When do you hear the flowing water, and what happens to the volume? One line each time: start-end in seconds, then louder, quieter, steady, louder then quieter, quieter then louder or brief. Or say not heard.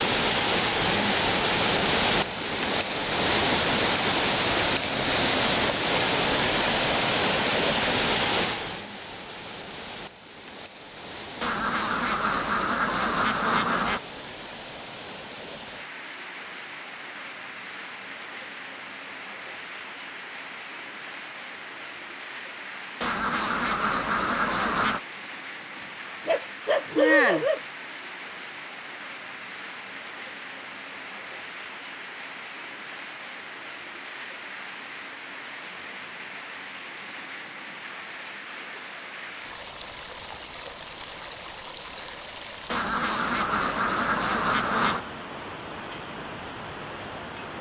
0.0-47.5 quieter.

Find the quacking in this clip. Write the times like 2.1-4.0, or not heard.
11.4-14.0, 23.0-25.0, 42.7-45.0.